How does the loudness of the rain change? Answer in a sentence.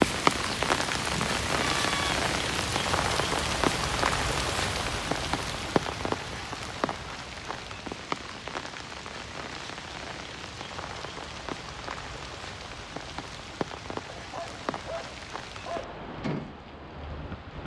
The volume of the rain goes down.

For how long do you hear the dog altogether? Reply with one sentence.
You can hear the dog for 2 seconds altogether.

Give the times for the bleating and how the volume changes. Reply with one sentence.
You can't hear the bleating here.